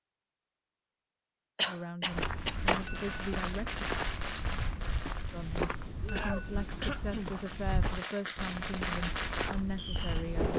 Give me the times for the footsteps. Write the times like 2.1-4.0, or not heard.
2.1-10.5.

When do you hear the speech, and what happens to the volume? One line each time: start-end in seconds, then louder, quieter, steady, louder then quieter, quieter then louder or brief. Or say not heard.
1.6-3.9 brief
5.3-10.5 steady.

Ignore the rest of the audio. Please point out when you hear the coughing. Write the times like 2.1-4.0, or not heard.
1.6-2.6, 6.2-7.3.